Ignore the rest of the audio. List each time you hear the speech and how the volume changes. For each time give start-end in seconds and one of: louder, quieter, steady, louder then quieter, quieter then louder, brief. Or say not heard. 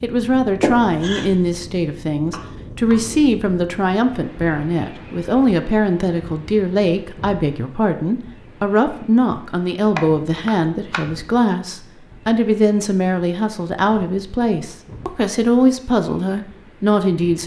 0.0-17.4 steady.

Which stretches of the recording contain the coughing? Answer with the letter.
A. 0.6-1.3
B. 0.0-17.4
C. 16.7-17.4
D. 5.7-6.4
A.